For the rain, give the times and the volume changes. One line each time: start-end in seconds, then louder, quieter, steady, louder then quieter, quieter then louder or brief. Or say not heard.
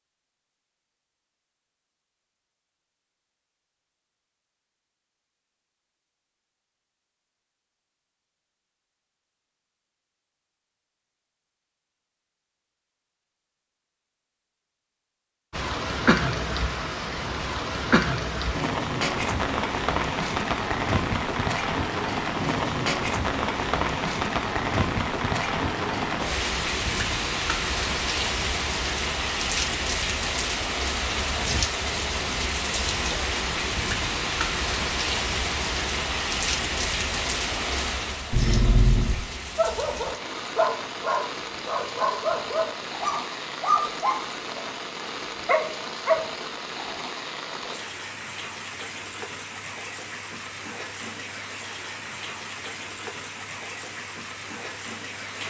15.5-55.4 quieter.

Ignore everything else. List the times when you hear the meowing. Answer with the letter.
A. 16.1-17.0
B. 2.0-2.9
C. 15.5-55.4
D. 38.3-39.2
D.